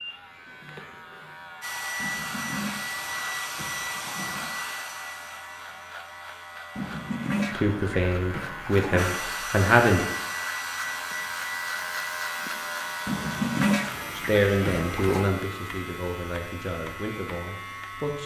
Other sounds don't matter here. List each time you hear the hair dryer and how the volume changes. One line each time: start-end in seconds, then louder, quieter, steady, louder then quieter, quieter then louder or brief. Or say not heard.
1.6-7.2 quieter
8.9-18.2 quieter.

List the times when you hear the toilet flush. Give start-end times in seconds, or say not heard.
1.9-4.5, 6.8-9.1, 13.1-15.3.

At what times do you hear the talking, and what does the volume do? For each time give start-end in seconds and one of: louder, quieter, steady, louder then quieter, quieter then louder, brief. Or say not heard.
7.5-10.1 brief
14.2-18.2 quieter.